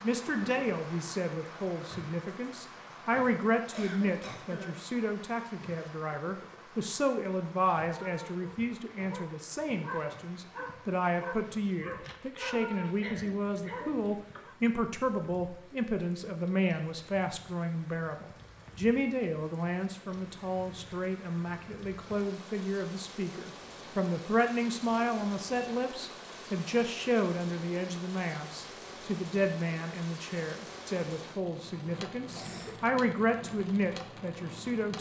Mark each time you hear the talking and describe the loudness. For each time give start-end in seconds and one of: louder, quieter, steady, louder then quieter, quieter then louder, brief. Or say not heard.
0.0-34.9 steady.